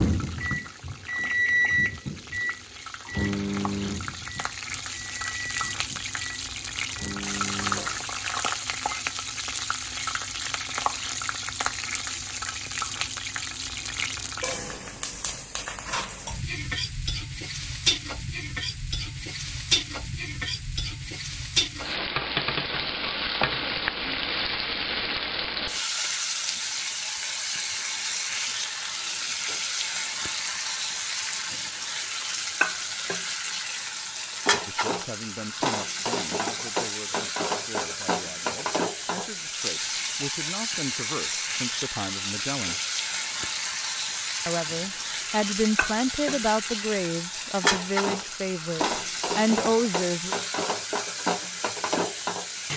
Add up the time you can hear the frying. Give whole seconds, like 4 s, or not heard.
53 s.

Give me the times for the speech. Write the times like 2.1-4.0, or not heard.
34.5-42.8, 44.5-50.4.